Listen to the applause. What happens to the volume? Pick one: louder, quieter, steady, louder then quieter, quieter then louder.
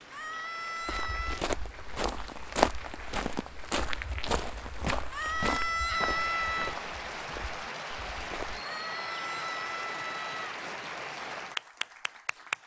louder.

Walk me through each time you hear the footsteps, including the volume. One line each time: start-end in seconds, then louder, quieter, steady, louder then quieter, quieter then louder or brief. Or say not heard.
0.8-8.6 quieter.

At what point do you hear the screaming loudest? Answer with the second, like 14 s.
6 s.